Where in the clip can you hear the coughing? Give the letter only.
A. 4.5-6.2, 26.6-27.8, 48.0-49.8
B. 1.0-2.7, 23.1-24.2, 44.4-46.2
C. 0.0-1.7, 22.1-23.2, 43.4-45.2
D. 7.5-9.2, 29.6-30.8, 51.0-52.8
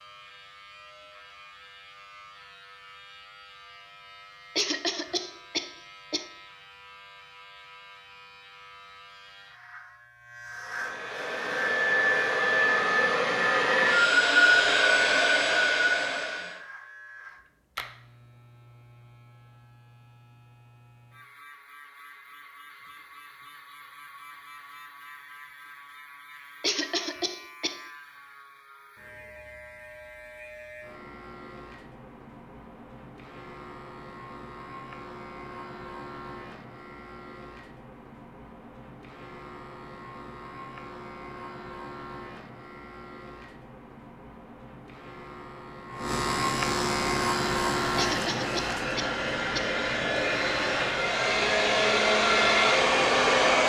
A.